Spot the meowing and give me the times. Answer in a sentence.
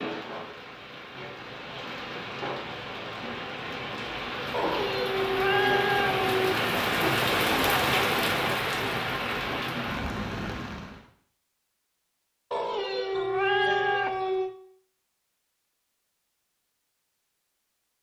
You can hear the meowing from 4.5 to 6.5 s and from 12.5 to 14.5 s.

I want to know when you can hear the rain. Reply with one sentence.
You can hear the rain from 0.0 to 11.1 s.